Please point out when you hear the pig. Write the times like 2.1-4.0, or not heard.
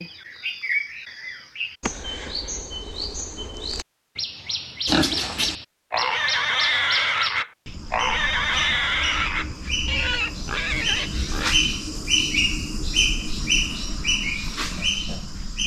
4.8-11.6.